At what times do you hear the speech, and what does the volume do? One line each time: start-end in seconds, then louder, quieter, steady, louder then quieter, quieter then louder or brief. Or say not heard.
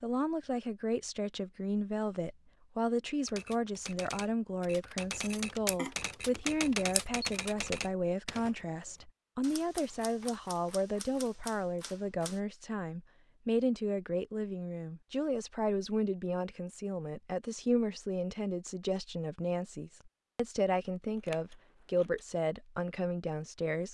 0.0-23.8 steady.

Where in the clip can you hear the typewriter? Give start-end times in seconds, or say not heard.
3.2-12.4.